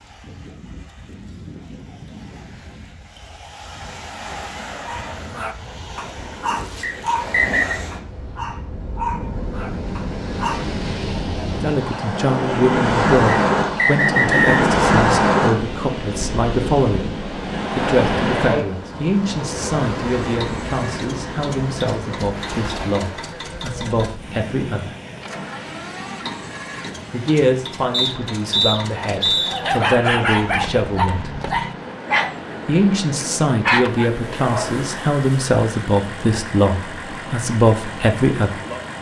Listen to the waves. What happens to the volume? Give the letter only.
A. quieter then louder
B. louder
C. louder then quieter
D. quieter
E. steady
C.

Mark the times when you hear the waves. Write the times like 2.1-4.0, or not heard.
0.0-38.9.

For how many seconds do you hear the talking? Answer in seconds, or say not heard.
23 s.